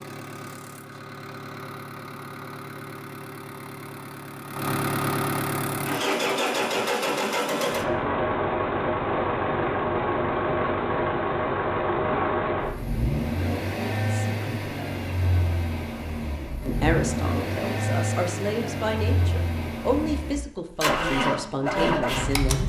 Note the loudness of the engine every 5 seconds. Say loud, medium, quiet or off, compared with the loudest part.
medium, loud, loud, medium, loud.